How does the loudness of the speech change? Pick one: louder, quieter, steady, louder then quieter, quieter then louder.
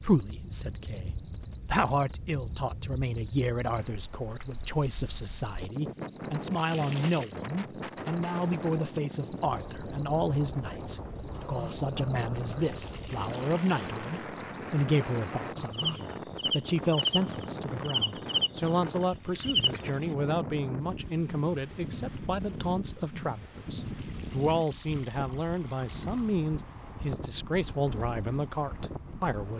steady.